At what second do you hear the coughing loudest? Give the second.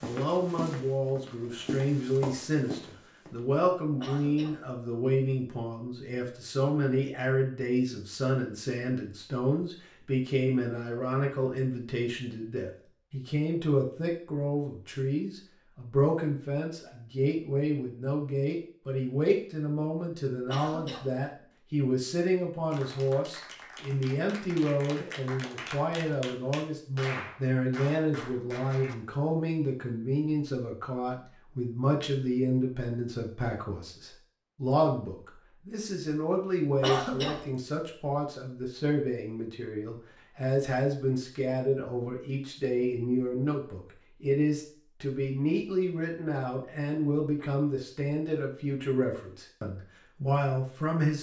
37 s.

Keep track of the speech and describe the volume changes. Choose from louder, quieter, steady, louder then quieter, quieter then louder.
steady.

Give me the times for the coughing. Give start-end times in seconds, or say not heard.
4.0-4.6, 20.4-21.1, 36.8-37.5.